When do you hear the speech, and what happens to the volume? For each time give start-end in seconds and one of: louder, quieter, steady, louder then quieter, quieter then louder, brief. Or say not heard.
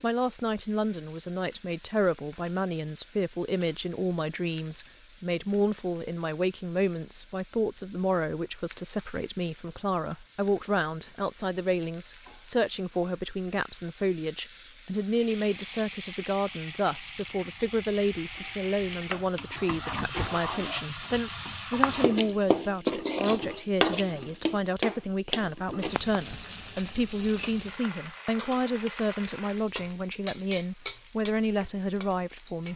0.0-32.7 steady.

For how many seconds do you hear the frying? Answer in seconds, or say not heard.
33 s.